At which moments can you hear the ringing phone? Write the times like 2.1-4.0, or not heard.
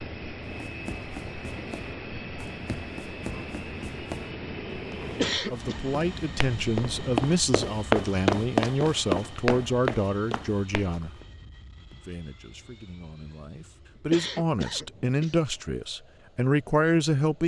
not heard.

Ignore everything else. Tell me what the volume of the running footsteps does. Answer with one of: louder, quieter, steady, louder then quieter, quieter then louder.
louder then quieter.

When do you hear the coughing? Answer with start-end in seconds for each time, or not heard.
5.2-5.8, 14.1-15.4.